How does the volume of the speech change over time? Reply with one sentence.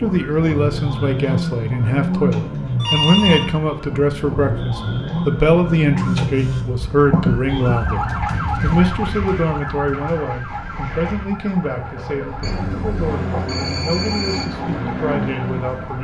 The loudness of the speech goes down.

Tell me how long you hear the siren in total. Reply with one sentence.
The siren can be heard for 16 seconds in total.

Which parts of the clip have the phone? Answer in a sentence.
The phone can be heard from 2.8 to 3.5 s, from 6.0 to 6.7 s and from 12.4 to 14.4 s.